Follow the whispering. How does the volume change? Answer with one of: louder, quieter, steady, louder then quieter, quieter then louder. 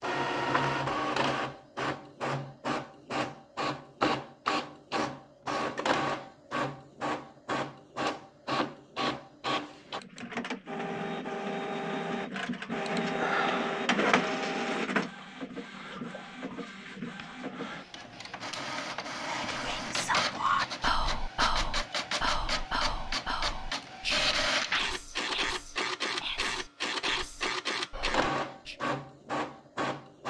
quieter.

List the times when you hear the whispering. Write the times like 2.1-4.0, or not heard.
19.2-28.8.